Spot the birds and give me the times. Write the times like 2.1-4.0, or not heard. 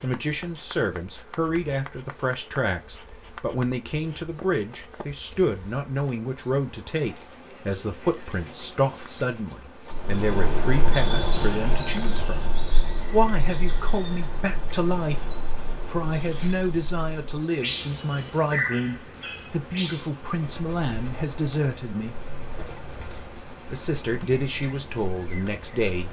9.9-26.0.